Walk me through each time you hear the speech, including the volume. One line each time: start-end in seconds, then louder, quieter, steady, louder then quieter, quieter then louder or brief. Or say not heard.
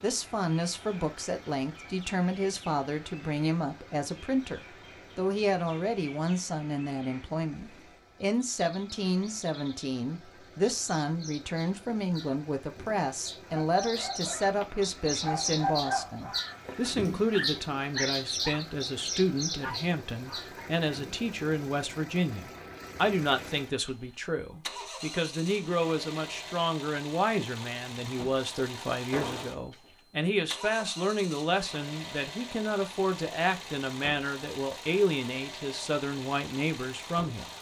0.0-37.5 steady.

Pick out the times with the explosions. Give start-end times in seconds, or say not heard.
29.1-29.6.